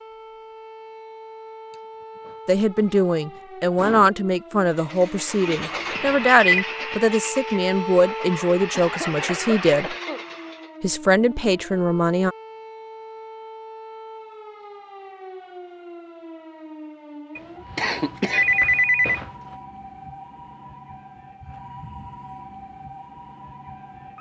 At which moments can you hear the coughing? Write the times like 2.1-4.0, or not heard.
1.7-3.0, 3.8-4.2, 8.2-10.2, 17.8-18.4.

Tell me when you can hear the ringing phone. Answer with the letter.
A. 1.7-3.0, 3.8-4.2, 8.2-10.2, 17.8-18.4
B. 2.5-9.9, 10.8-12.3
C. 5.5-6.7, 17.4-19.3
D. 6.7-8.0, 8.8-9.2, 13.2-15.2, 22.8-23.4
C.